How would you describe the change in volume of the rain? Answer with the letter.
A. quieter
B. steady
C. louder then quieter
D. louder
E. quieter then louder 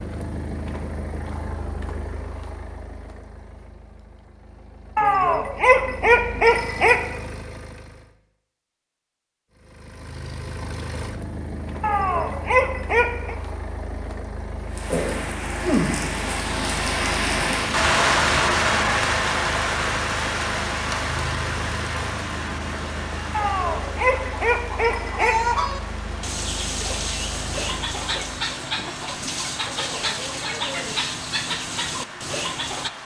A.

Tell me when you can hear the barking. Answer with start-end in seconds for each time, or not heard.
5.0-7.0, 11.8-13.3, 23.3-25.4.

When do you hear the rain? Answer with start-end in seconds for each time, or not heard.
14.7-32.9.